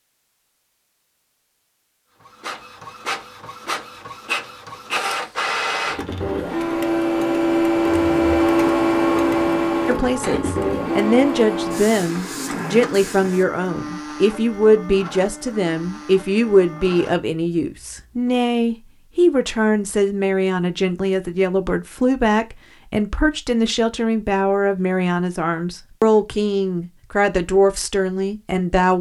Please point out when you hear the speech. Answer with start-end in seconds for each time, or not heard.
9.8-28.9.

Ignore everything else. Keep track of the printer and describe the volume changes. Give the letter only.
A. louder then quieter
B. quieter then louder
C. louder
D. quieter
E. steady
A.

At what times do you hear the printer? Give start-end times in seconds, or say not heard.
2.2-18.4.